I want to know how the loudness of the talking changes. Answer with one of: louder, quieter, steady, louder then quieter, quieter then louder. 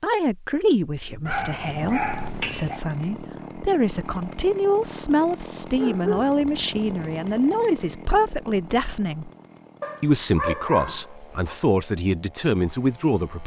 steady.